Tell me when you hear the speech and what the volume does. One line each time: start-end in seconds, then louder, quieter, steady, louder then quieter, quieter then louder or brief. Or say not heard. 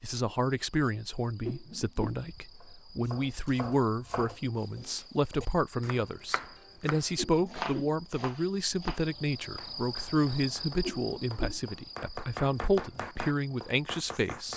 0.0-14.5 steady.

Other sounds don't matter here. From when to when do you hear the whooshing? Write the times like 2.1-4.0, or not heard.
1.4-2.2, 7.2-8.0, 10.8-11.6.